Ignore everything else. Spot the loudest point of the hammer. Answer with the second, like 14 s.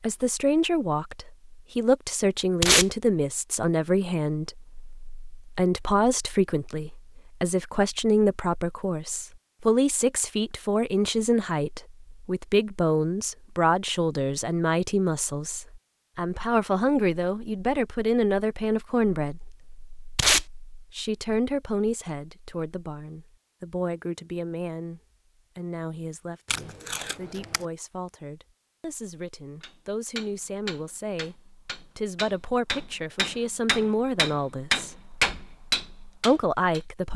35 s.